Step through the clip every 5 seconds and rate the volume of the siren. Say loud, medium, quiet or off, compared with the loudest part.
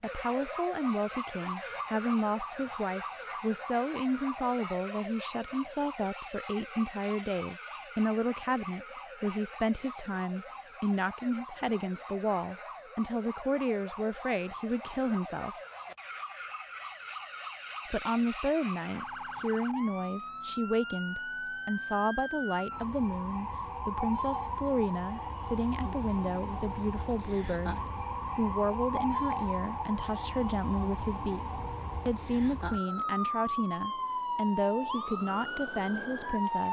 medium, medium, medium, medium, loud, loud, loud, loud.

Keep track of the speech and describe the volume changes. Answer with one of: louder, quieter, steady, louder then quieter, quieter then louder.
steady.